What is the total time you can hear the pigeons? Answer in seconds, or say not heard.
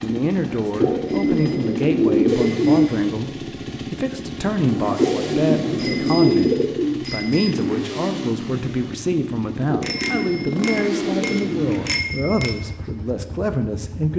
7 s.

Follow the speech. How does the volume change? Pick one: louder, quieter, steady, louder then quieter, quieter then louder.
steady.